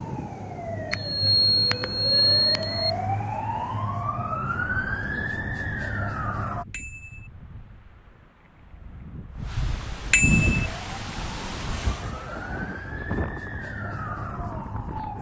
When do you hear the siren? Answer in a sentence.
You can hear the siren from 0.0 to 6.7 s and from 10.6 to 15.1 s.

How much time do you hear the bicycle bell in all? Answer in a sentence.
You can hear the bicycle bell for 3 seconds altogether.